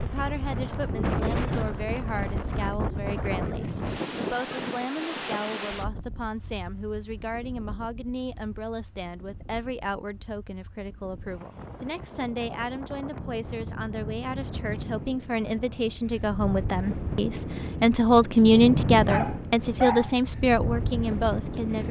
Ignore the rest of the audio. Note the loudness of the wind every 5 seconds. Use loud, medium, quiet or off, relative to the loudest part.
loud, medium, medium, loud, loud.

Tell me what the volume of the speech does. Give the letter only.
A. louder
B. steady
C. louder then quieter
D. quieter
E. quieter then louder
A.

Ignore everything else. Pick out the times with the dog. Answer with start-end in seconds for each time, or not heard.
19.1-20.1.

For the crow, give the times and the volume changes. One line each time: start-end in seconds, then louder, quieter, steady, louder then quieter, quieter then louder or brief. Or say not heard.
not heard.